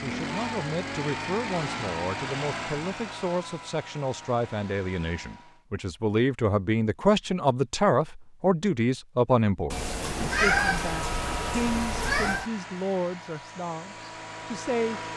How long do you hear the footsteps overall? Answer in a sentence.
You can't hear the footsteps here.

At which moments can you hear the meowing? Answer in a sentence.
You can hear the meowing from 9.7 to 12.4 s.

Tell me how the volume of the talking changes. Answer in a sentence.
The loudness of the talking goes up, then down.